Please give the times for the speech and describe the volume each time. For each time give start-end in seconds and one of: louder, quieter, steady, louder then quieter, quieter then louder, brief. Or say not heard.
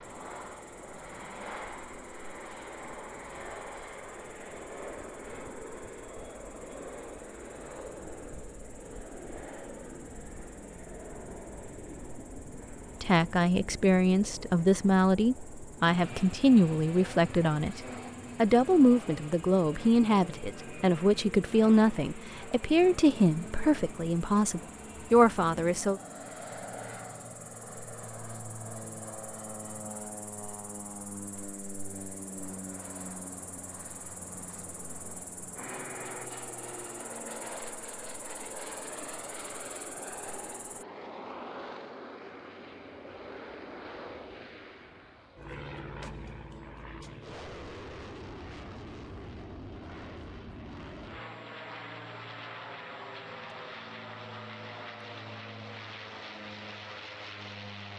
13.0-26.0 steady.